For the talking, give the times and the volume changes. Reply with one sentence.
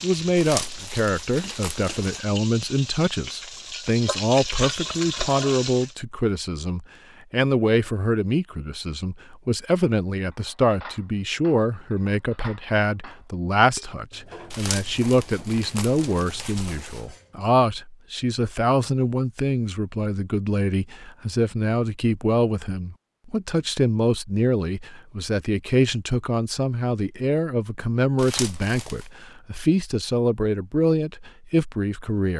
You can hear the talking from 0.0 to 32.3 s, at a steady volume.